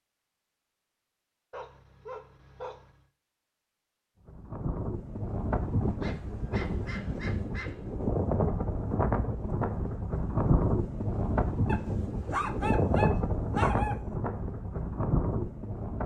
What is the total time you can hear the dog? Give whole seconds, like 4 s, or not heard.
6 s.